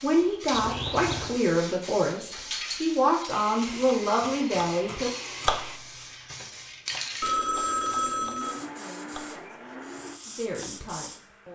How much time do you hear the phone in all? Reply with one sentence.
You can hear the phone for 2 seconds altogether.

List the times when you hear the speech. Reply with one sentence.
You can hear the speech from 0.0 to 5.1 s and from 8.2 to 11.4 s.